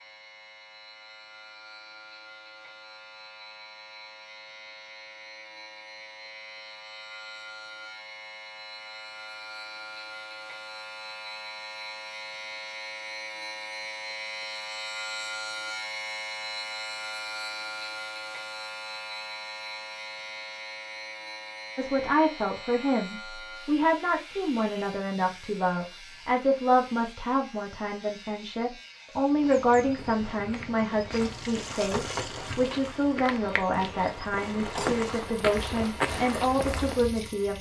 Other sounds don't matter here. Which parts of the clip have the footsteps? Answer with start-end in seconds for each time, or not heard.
29.2-37.0.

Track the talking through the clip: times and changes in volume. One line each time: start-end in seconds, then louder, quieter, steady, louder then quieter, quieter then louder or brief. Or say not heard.
21.8-37.5 steady.